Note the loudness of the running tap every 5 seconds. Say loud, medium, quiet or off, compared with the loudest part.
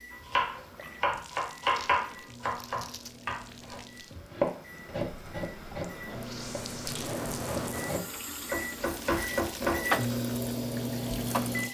quiet, loud, loud.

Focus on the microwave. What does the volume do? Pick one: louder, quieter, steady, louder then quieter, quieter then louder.
louder.